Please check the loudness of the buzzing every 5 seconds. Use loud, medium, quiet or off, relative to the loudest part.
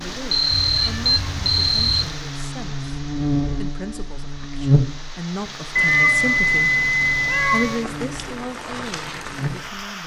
loud, medium.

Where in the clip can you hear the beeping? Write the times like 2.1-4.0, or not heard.
0.3-2.1, 5.8-7.8.